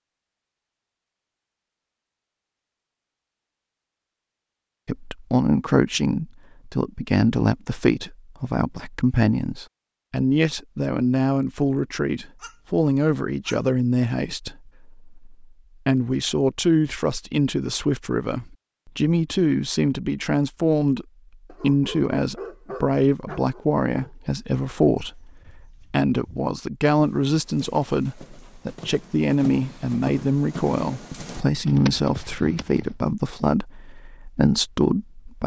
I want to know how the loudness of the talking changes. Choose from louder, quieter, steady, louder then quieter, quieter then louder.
steady.